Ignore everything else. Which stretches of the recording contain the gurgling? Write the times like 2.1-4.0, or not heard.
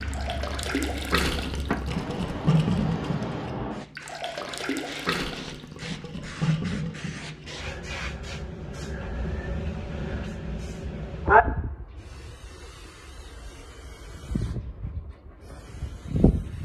0.0-7.5.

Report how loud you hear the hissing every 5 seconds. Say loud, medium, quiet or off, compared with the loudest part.
medium, medium, loud, loud.